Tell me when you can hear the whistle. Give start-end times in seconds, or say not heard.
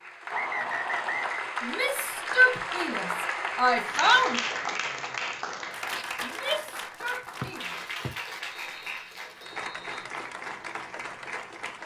0.3-1.5, 7.4-10.1.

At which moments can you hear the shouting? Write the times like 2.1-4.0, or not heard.
1.6-4.4, 6.2-7.8.